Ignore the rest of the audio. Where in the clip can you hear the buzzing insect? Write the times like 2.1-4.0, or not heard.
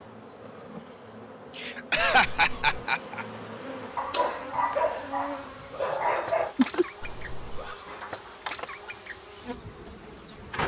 0.0-10.6.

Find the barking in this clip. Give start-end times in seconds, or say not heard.
4.0-6.5.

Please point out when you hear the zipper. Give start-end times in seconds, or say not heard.
not heard.